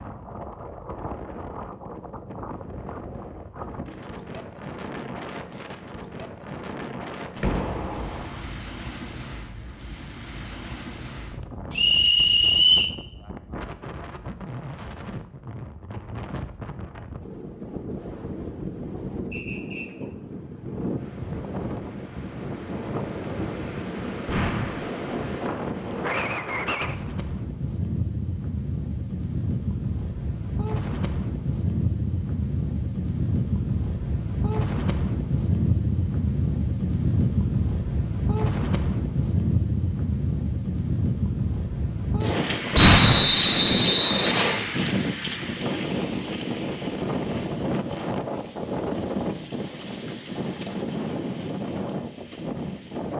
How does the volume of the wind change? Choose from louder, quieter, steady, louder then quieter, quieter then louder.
louder.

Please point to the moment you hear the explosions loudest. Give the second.
43 s.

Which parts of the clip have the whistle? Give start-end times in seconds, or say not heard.
11.7-12.9, 19.3-19.9, 42.7-44.6.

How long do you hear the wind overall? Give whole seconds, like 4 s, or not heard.
53 s.